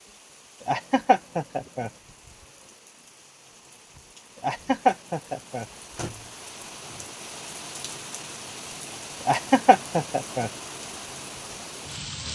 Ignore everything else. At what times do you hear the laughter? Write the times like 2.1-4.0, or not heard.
0.7-1.9, 4.4-5.7, 9.2-10.5.